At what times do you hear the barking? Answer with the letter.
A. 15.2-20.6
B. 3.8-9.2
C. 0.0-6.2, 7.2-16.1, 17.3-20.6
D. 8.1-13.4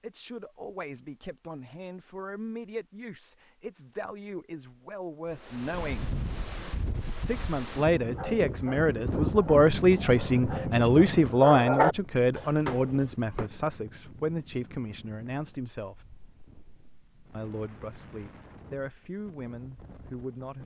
D.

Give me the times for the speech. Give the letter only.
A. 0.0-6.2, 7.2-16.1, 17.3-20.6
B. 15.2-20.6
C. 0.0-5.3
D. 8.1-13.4
A.